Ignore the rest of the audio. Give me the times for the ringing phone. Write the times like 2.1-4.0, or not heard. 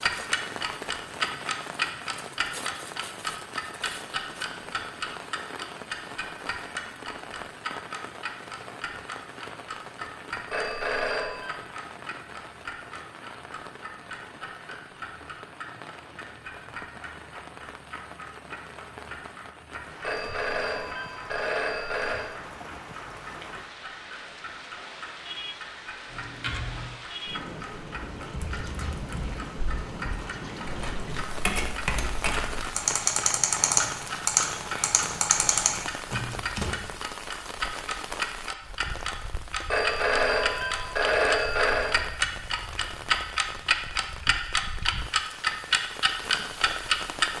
10.5-11.6, 20.0-22.3, 39.7-42.0.